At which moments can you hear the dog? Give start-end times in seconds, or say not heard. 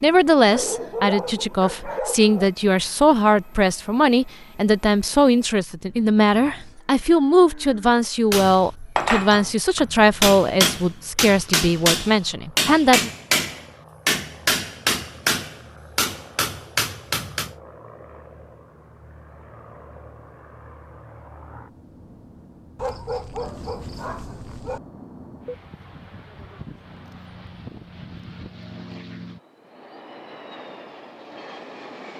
0.5-2.5, 22.8-24.8.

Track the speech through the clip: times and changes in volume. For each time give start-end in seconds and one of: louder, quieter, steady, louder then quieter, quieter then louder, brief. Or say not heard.
0.0-13.1 steady.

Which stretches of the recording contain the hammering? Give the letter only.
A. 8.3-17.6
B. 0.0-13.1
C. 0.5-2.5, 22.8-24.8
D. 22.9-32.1
A.